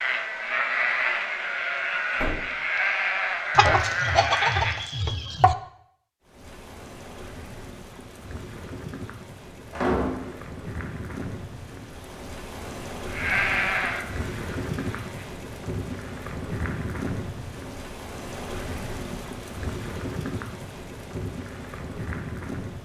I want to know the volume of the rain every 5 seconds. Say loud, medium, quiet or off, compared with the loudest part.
off, medium, loud, loud, loud.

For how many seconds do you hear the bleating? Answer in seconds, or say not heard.
7 s.